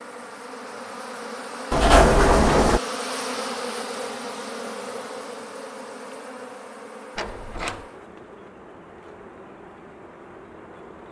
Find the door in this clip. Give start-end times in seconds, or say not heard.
1.7-2.8, 7.2-7.8.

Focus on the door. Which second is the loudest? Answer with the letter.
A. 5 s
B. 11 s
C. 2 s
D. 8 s
C.